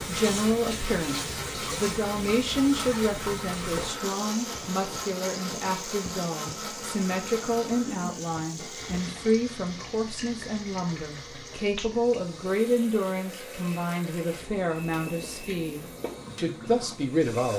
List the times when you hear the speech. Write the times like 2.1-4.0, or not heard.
0.1-17.5.